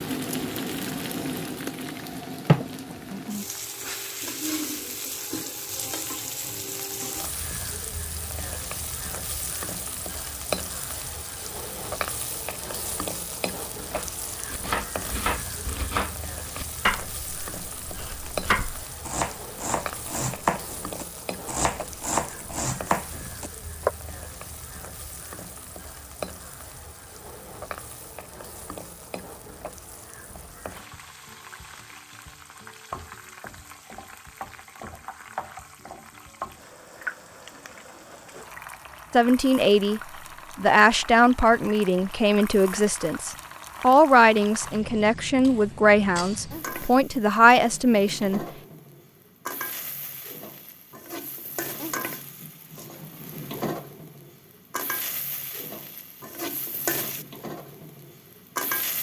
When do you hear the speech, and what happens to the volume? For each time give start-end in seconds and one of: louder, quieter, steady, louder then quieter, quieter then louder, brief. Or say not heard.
39.1-48.4 steady.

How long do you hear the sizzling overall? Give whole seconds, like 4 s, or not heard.
59 s.